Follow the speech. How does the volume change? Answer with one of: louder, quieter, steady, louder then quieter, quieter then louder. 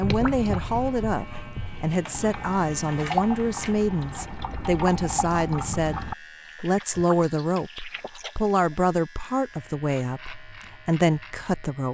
steady.